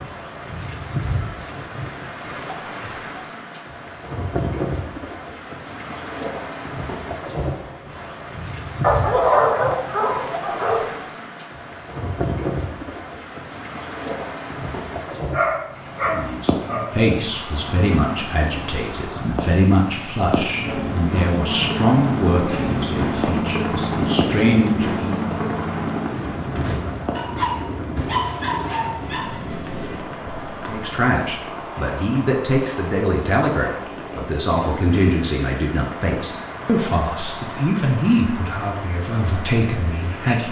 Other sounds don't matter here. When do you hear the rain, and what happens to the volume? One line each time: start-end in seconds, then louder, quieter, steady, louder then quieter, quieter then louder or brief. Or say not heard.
0.0-40.4 quieter.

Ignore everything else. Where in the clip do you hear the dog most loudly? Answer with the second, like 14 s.
9 s.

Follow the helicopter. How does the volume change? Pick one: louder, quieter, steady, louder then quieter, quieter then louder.
quieter.